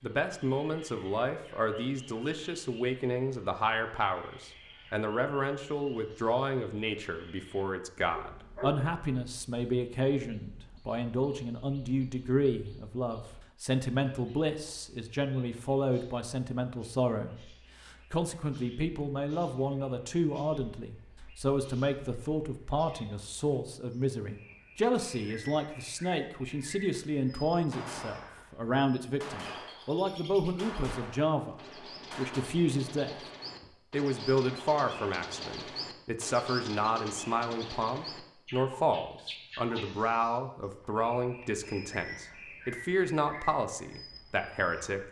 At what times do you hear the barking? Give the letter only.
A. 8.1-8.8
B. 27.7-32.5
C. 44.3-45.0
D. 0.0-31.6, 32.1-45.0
A.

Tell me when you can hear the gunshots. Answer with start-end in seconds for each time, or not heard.
27.7-32.5.